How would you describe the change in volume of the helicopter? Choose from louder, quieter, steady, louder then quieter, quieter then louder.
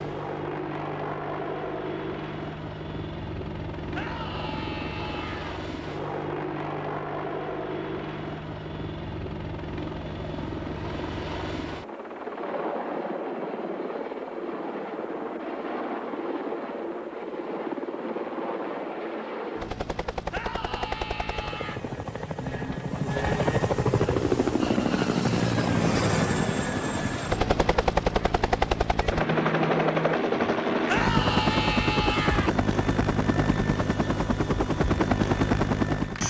louder.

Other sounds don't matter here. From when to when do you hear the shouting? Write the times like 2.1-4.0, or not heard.
3.9-5.6, 20.3-21.8, 30.9-32.5.